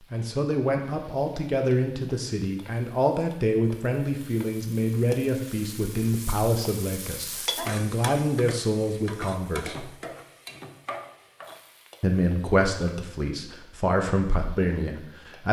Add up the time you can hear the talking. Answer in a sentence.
You can hear the talking for 13 seconds altogether.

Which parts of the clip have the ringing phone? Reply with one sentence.
You can't hear the ringing phone here.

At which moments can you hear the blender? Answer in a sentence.
You can't hear the blender here.